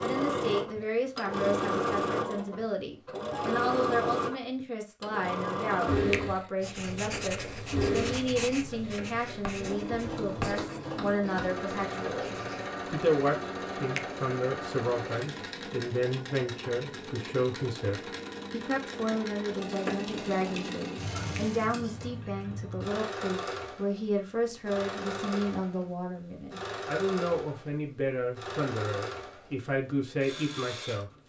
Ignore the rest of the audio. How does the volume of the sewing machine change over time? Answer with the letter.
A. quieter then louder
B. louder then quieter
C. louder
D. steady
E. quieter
E.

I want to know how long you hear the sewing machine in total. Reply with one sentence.
You can hear the sewing machine for 31 seconds altogether.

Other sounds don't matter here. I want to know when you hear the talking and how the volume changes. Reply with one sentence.
You can hear the talking from 0.0 to 31.1 s, at a steady volume.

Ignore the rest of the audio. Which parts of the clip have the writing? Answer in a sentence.
The writing can be heard from 6.6 to 12.8 s.